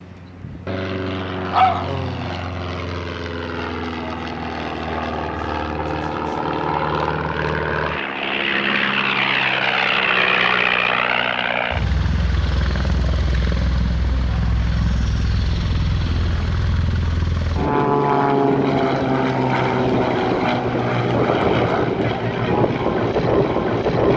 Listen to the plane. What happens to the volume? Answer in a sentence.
The loudness of the plane goes up.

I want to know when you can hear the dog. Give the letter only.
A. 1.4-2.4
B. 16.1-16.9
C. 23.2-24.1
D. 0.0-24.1
A.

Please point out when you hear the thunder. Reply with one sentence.
You can't hear the thunder here.